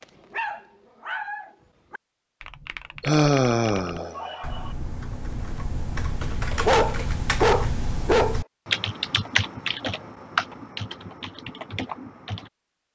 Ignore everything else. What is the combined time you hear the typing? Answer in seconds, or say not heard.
10 s.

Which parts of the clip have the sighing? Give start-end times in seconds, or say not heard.
3.0-4.7.